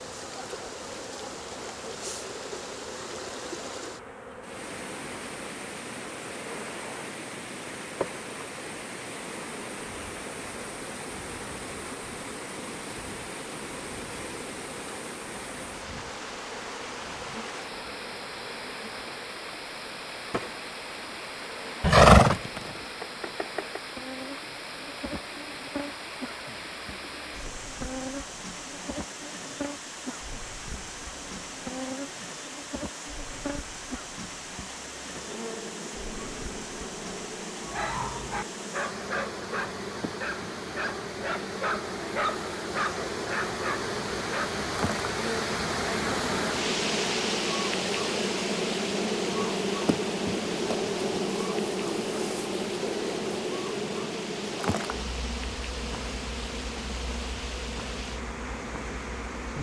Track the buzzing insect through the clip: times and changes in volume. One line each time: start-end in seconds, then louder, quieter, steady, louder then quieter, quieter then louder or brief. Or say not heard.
0.0-59.5 louder.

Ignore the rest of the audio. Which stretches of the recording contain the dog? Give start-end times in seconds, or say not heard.
37.6-44.6.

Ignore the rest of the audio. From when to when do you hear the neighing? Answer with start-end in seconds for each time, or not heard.
21.8-22.7.